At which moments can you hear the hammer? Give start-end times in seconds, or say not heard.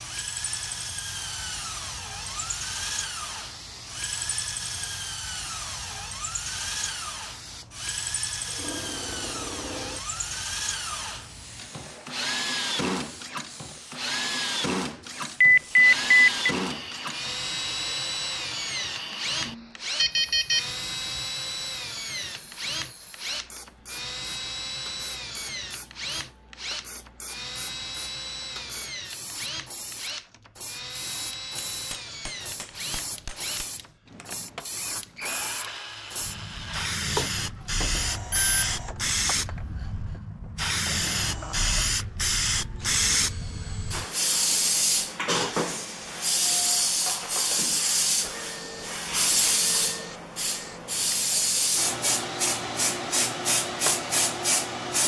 31.7-34.0.